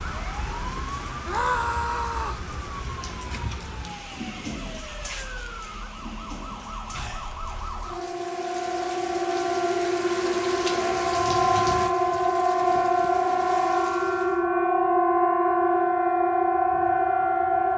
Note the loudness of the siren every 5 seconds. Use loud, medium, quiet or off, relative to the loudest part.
quiet, medium, loud, loud.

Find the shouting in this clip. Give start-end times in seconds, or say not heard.
1.2-2.5.